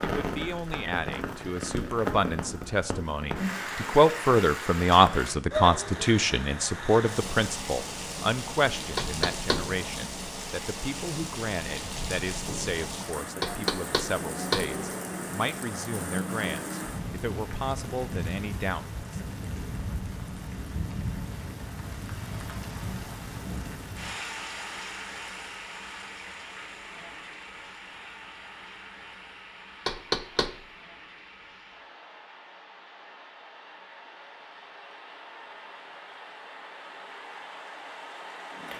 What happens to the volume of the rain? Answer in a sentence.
The loudness of the rain goes down.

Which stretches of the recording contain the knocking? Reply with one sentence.
You can hear the knocking from 8.9 to 9.7 s, from 13.4 to 14.7 s and from 29.9 to 30.6 s.